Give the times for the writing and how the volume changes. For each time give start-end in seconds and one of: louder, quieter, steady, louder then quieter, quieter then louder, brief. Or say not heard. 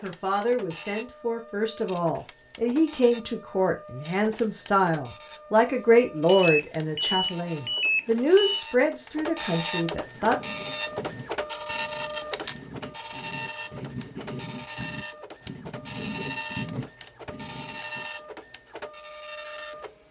10.1-18.1 louder.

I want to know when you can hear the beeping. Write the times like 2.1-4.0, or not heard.
6.2-8.6.